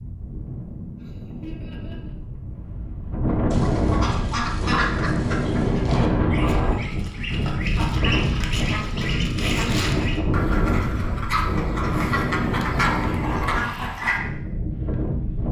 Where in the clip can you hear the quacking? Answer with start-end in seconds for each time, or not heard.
3.5-14.2.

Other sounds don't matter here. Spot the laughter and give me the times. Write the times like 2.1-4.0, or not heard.
0.9-2.1.